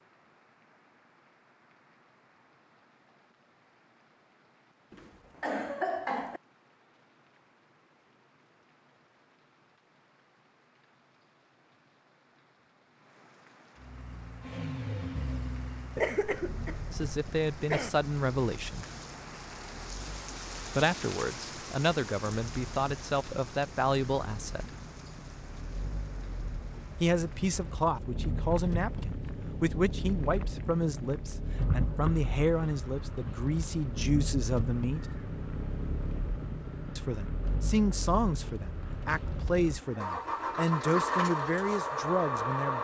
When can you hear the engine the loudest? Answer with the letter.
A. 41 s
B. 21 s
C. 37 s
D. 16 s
A.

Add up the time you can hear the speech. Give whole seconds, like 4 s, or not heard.
20 s.